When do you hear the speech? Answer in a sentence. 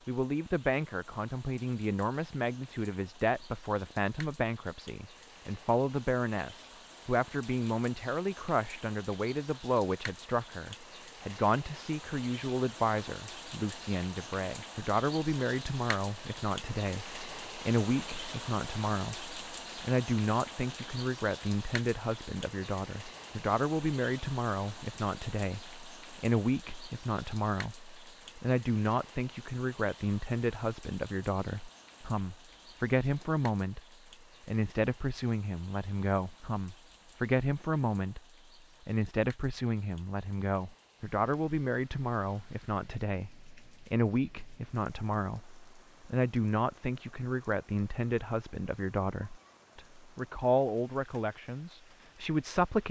You can hear the speech from 0.1 to 33.8 s, from 34.5 to 38.2 s and from 38.9 to 52.8 s.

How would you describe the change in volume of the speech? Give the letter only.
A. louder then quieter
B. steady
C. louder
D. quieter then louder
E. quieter
B.